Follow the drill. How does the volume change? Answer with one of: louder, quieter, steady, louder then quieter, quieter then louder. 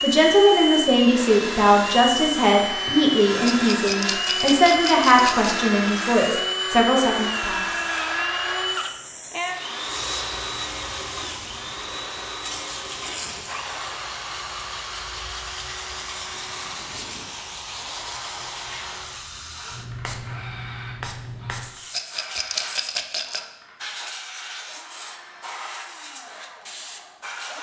quieter.